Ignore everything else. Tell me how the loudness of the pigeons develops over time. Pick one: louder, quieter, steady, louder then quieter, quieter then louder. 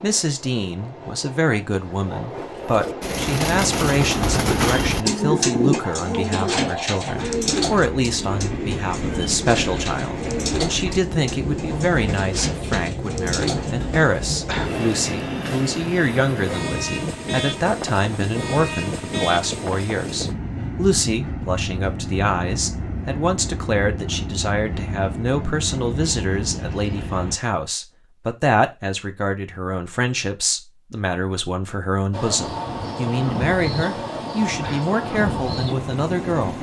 quieter.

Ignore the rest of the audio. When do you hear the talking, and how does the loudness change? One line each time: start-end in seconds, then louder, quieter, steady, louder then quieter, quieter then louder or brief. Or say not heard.
0.0-36.5 steady.